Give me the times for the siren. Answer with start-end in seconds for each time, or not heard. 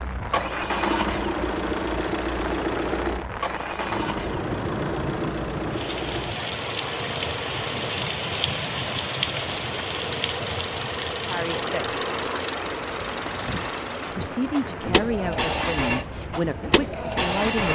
not heard.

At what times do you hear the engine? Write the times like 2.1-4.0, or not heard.
0.0-17.7.